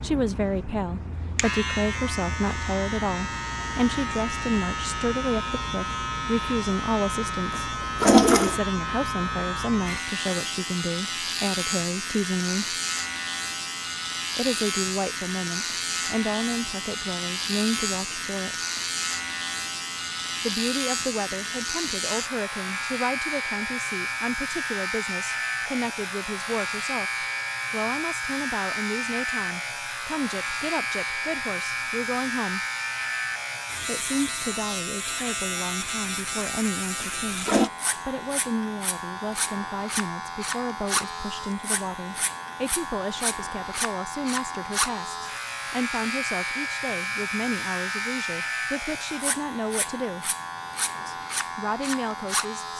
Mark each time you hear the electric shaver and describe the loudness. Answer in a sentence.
You can hear the electric shaver from 0.0 to 52.7 s, at a steady volume.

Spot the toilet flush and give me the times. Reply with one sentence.
The toilet flush can be heard from 7.5 to 8.6 s and from 37.0 to 37.7 s.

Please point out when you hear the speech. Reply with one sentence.
You can hear the speech from 0.0 to 12.8 s, from 14.3 to 18.6 s, from 20.4 to 32.6 s, from 33.9 to 50.4 s and from 51.0 to 52.7 s.